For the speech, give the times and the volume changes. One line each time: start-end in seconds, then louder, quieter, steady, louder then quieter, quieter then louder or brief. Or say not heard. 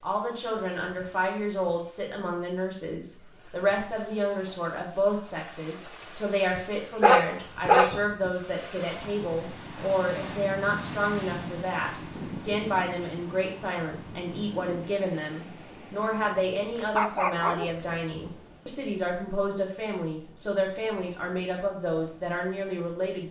0.0-23.2 steady.